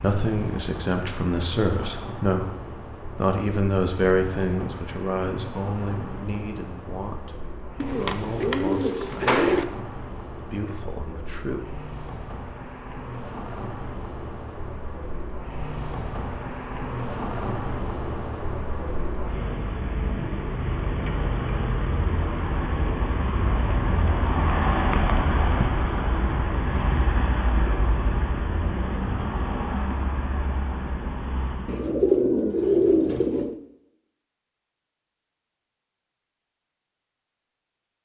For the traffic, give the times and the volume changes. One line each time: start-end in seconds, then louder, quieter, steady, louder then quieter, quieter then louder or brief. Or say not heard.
0.0-31.9 louder.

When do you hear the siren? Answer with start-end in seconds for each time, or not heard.
not heard.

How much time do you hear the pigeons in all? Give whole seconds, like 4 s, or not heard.
4 s.